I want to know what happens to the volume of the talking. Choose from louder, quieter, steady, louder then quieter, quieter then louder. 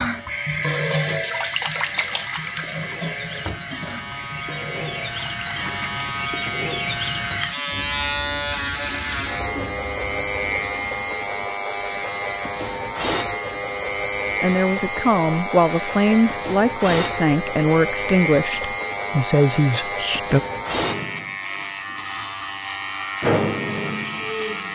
steady.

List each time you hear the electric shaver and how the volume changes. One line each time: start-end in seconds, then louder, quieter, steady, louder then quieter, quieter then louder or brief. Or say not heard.
0.0-24.7 louder.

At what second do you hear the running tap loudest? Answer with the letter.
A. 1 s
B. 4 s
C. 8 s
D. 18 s
A.